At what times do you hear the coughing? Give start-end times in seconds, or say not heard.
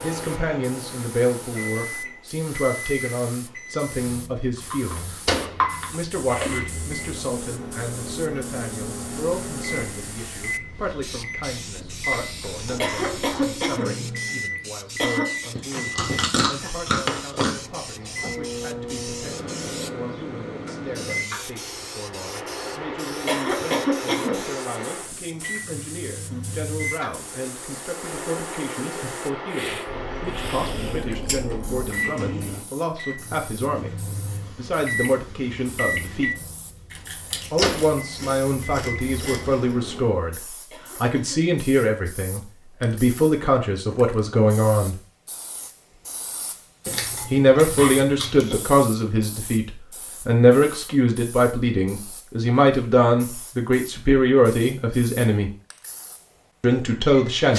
12.8-14.4, 15.0-15.5, 23.2-24.9, 40.7-41.5.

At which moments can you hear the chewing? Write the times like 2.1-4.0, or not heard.
4.5-6.7, 15.6-17.5, 29.9-31.9, 36.9-39.6, 46.9-48.6.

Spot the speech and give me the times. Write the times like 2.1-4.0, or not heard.
0.0-5.2, 5.9-36.4, 37.5-45.0, 47.3-55.5, 56.6-57.5.